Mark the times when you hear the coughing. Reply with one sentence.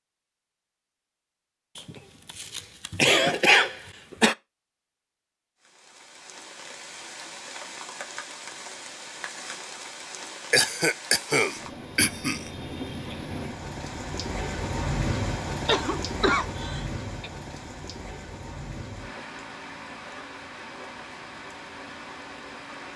The coughing can be heard from 1.8 to 4.3 s, from 10.5 to 12.5 s and from 15.7 to 17.3 s.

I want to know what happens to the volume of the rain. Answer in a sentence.
The volume of the rain goes up, then down.